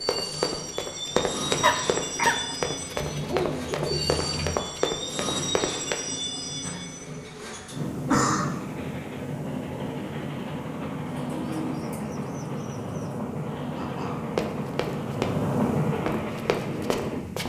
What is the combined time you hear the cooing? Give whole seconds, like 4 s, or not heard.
4 s.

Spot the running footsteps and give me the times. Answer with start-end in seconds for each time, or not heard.
0.0-6.0, 14.3-17.4.